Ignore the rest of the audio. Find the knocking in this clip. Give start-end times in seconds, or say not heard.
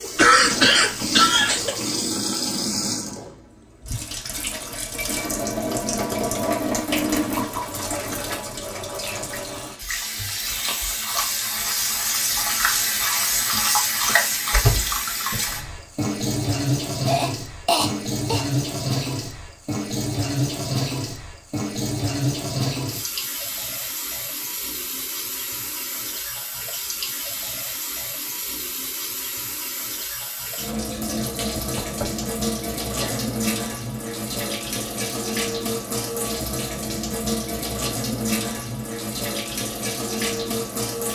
31.6-32.2.